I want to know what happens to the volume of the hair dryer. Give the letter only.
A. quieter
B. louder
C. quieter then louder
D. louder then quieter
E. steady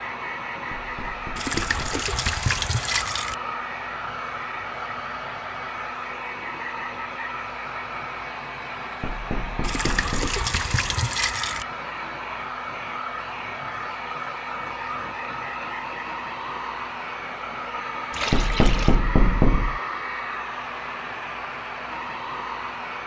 E.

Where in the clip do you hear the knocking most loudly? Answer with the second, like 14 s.
19 s.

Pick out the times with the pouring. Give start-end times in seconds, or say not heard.
1.4-3.4, 9.6-11.7, 18.1-19.0.